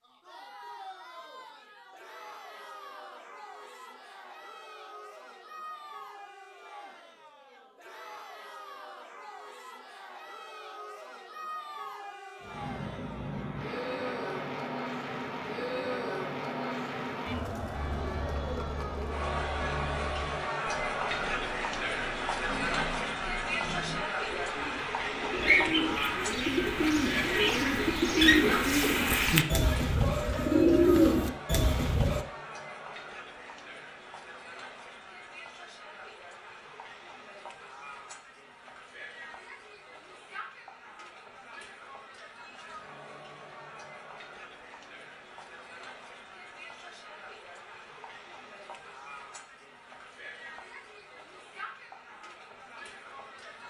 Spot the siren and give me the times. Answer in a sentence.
The siren can't be heard in this clip.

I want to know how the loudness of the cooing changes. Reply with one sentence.
The loudness of the cooing goes up.